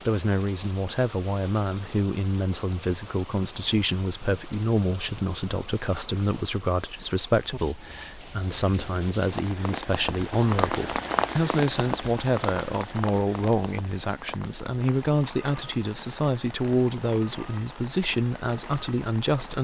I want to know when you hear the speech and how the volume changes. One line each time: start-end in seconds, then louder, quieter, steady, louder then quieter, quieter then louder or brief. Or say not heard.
0.1-19.5 steady.